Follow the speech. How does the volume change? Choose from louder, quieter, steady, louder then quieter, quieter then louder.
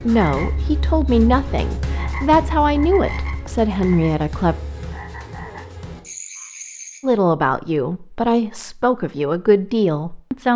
steady.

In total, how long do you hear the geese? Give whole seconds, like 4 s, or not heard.
not heard.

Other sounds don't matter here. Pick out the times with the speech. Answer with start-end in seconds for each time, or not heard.
0.0-4.5, 7.0-10.5.